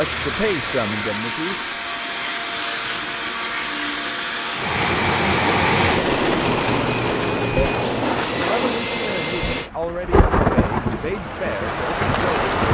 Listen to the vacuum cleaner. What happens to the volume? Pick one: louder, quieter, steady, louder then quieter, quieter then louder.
steady.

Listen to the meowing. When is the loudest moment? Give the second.
8 s.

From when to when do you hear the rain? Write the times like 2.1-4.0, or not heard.
4.5-12.6.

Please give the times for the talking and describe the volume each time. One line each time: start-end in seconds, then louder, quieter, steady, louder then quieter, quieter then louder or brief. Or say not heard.
0.0-1.6 brief
8.3-12.6 steady.